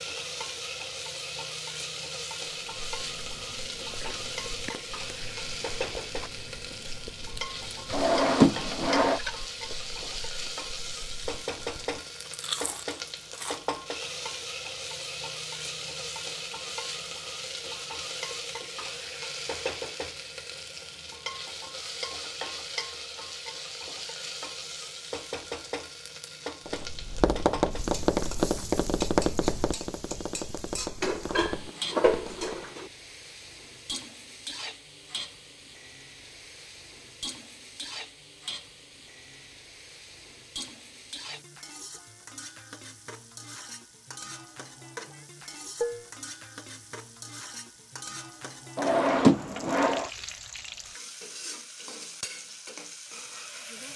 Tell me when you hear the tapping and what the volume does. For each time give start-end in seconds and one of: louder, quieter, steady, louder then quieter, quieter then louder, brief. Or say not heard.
26.6-32.7 quieter.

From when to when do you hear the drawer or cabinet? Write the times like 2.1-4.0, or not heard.
7.9-9.2, 48.8-50.1.